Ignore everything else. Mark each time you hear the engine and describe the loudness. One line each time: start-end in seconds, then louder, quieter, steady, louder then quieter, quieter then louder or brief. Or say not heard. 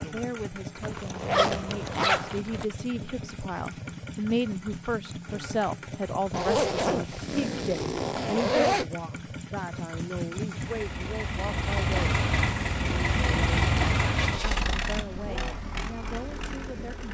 0.0-17.0 louder.